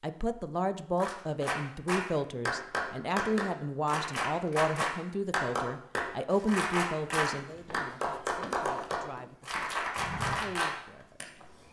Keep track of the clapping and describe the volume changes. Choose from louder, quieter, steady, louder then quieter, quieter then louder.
steady.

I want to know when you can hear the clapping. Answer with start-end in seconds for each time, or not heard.
1.0-11.2.